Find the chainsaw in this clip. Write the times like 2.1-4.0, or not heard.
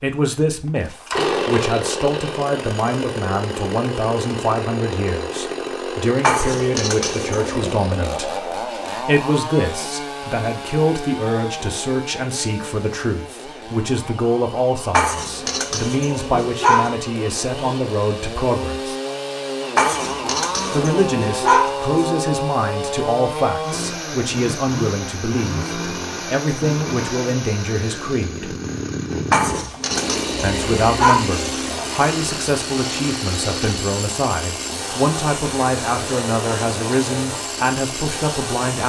0.0-38.8.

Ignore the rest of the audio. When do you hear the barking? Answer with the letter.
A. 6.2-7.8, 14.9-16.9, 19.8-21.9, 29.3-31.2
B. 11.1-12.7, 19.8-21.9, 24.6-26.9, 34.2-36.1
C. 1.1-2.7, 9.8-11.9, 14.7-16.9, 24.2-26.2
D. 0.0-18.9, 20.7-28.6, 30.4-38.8
A.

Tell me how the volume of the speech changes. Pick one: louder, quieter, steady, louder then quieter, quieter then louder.
steady.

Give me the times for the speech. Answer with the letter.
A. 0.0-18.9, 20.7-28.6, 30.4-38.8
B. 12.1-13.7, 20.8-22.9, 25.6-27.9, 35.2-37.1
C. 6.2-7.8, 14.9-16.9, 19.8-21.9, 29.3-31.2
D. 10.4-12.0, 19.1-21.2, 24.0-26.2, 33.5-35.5
A.